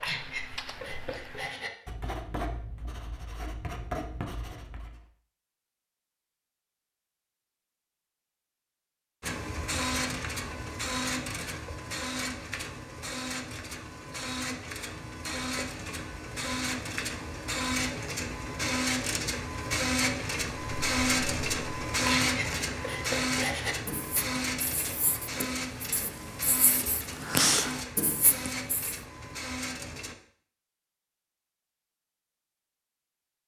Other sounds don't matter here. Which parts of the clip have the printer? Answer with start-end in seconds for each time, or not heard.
9.2-30.1.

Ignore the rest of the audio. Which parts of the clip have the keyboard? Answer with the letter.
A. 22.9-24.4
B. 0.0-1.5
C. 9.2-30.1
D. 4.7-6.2
B.